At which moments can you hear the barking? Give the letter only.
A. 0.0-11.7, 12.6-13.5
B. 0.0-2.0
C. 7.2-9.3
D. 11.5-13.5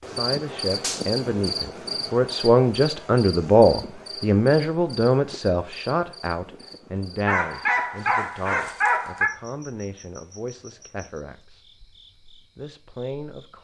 C.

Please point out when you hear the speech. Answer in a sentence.
The speech can be heard from 0.0 to 11.7 s and from 12.6 to 13.5 s.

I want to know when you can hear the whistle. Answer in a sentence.
You can't hear the whistle here.